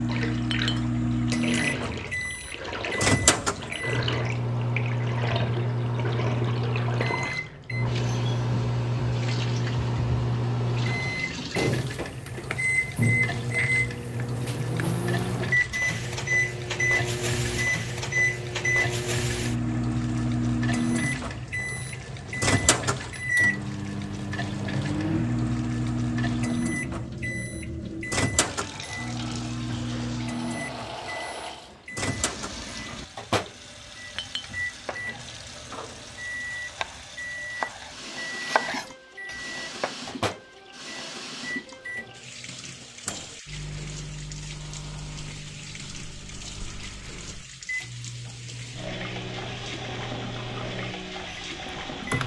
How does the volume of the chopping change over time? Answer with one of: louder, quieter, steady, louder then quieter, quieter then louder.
louder then quieter.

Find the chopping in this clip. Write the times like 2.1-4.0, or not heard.
34.8-40.1.